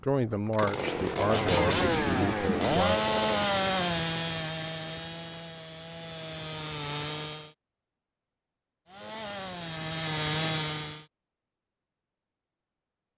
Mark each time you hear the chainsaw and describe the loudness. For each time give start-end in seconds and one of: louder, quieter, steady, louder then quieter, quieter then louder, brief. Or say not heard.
0.3-7.5 quieter
8.8-11.1 brief.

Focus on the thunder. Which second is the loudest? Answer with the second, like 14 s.
2 s.